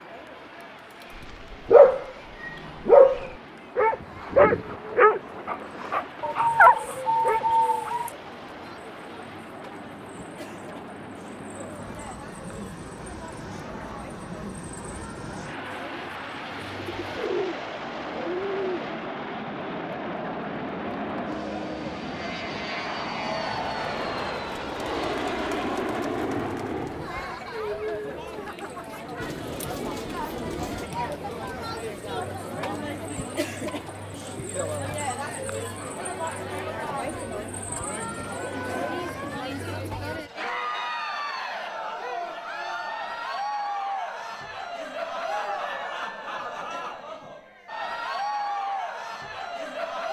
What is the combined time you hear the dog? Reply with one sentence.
The dog can be heard for 6 seconds in total.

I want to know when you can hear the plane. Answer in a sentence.
The plane can be heard from 0.0 to 27.4 s.